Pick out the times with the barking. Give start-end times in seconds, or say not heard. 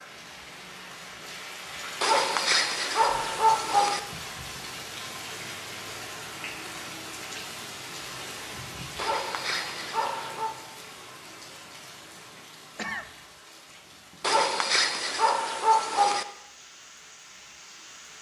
2.0-4.0, 8.9-10.6, 14.2-16.2.